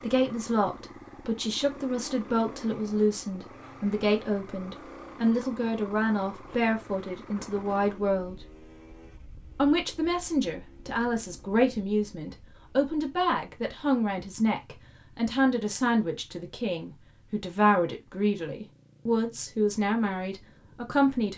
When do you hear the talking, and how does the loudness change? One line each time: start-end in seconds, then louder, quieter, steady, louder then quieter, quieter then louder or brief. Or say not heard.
0.0-8.4 steady
9.6-21.3 steady.